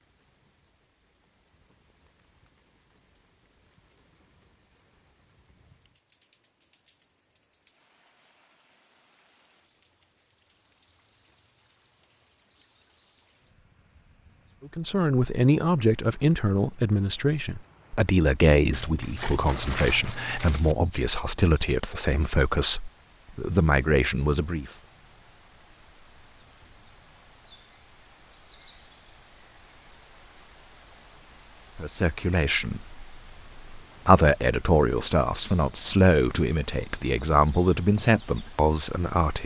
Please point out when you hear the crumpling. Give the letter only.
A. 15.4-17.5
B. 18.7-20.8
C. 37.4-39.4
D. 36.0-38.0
B.